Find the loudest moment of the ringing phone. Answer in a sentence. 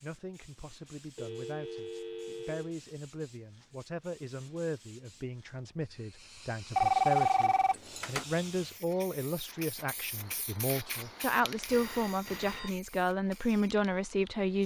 The loudest moment of the ringing phone is at 7 seconds.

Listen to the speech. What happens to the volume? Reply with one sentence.
The loudness of the speech goes up.